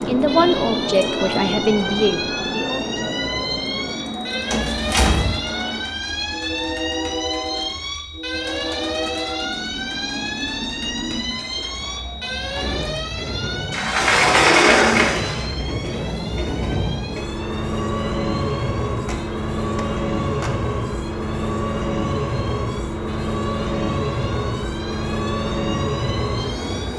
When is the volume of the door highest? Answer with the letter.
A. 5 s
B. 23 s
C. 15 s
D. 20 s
C.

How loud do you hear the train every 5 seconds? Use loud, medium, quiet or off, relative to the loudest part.
loud, medium, medium, loud, loud, loud.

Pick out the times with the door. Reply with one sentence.
The door can be heard from 4.5 to 5.4 s, from 13.7 to 15.4 s and from 18.9 to 20.6 s.